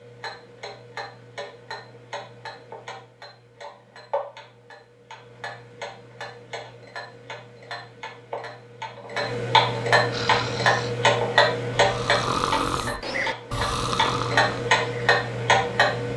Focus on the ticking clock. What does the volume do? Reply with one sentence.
The loudness of the ticking clock goes up.